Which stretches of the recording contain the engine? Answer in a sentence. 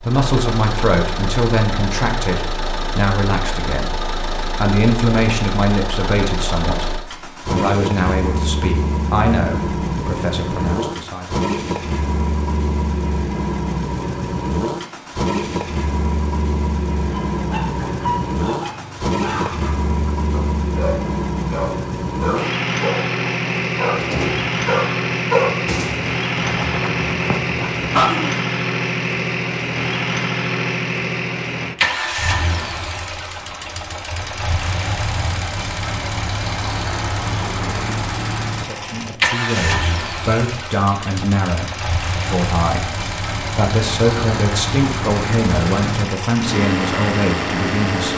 You can hear the engine from 0.0 to 48.1 s.